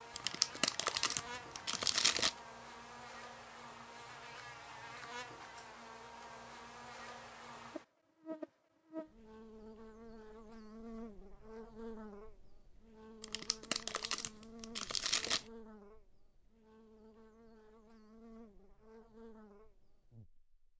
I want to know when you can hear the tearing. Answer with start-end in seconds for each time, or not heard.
0.1-2.4, 13.2-15.4.